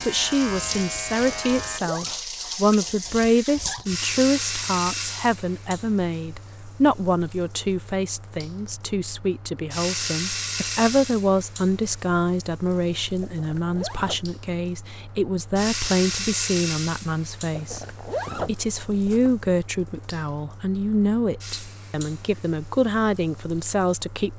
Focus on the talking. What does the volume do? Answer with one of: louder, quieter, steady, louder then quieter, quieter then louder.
steady.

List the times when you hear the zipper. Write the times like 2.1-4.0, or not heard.
1.4-2.2, 13.2-14.2, 17.5-19.3.